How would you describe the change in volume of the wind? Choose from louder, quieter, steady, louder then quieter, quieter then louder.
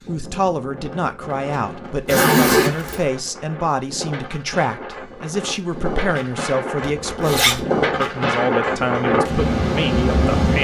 louder.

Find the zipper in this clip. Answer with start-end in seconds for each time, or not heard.
2.0-3.0, 7.0-7.7.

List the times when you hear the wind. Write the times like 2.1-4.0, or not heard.
0.0-10.5.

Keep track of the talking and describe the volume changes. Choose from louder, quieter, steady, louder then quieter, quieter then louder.
steady.